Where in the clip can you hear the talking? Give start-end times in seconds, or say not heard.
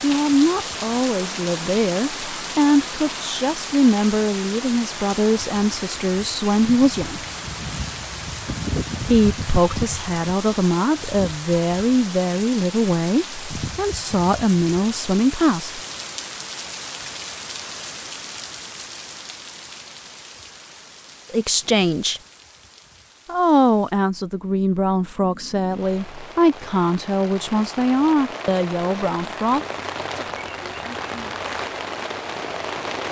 0.0-7.2, 9.1-15.8, 21.3-22.2, 23.2-29.6.